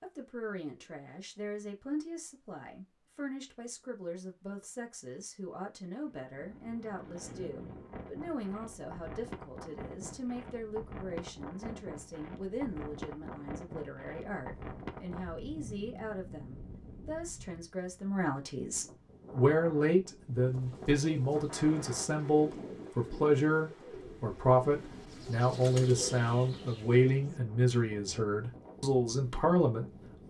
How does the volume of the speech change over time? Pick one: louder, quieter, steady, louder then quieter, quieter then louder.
louder.